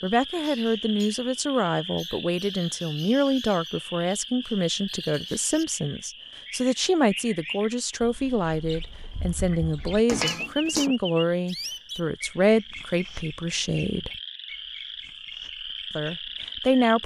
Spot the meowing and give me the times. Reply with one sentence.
The meowing can be heard from 10.1 to 10.9 s.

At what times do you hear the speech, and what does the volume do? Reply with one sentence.
The speech can be heard from 0.0 to 14.1 s, at a steady volume; and briefly from 15.9 to 17.0 s.